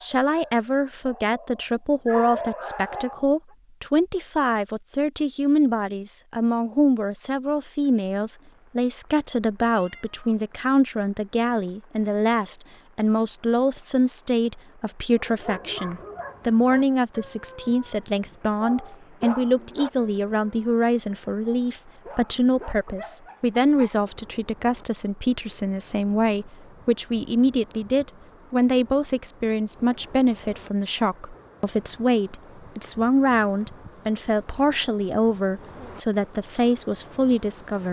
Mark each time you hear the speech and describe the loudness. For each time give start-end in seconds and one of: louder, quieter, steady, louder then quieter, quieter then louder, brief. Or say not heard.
0.0-37.8 steady.